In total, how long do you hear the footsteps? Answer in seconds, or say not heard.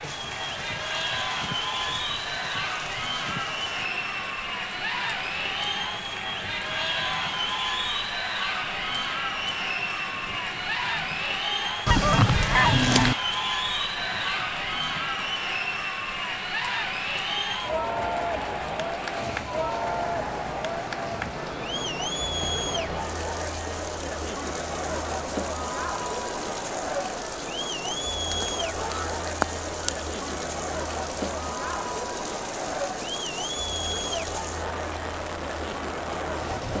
not heard.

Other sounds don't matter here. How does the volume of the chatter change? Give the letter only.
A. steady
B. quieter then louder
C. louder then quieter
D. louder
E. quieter
A.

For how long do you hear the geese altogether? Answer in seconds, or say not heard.
3 s.